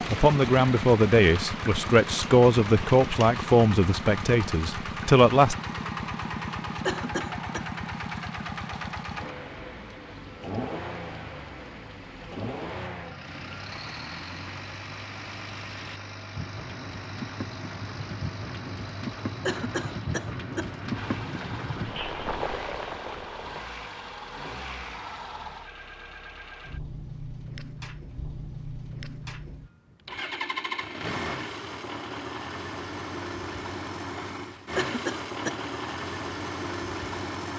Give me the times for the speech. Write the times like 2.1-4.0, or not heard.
0.1-5.5.